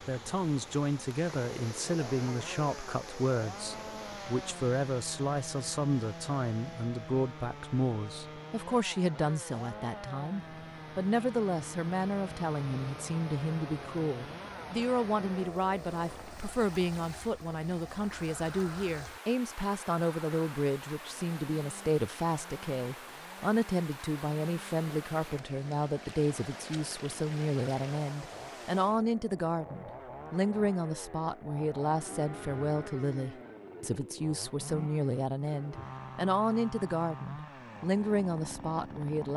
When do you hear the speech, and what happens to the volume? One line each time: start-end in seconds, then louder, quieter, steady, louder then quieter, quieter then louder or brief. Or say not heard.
0.1-39.3 steady.